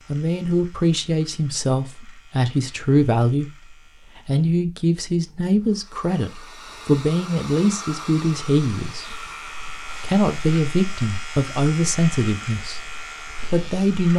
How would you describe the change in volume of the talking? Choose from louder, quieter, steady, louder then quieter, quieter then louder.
steady.